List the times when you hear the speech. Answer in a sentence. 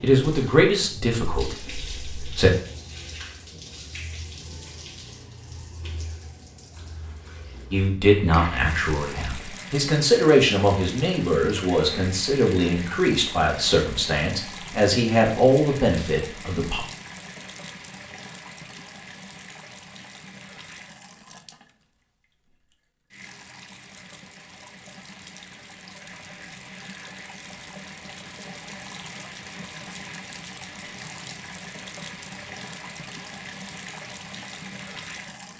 You can hear the speech from 0.0 to 2.5 s and from 7.7 to 16.8 s.